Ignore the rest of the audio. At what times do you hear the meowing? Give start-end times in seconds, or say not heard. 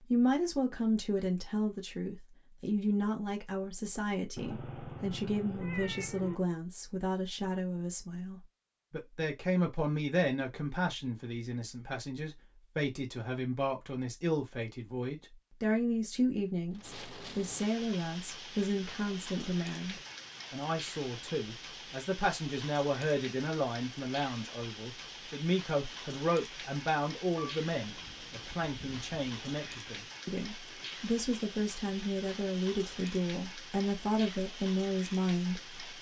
4.3-6.4, 27.4-30.0.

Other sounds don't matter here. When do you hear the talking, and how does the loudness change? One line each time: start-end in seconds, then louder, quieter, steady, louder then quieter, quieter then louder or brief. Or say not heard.
0.1-35.8 steady.